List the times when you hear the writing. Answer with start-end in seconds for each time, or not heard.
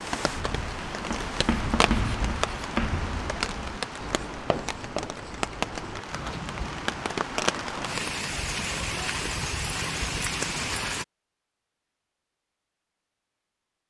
0.1-7.0.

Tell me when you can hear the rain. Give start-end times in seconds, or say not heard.
0.0-11.1.